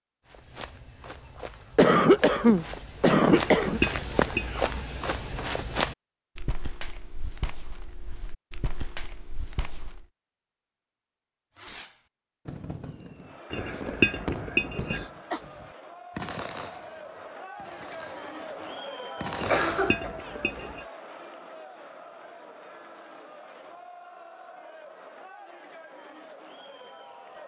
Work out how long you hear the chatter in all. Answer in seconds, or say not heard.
14 s.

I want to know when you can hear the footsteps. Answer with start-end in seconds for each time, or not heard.
0.2-10.1.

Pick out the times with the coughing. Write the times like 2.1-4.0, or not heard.
1.8-3.8, 14.7-15.4, 19.4-20.1.